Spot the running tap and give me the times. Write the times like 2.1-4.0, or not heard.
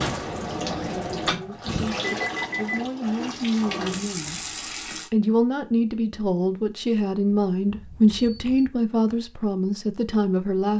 0.0-5.1.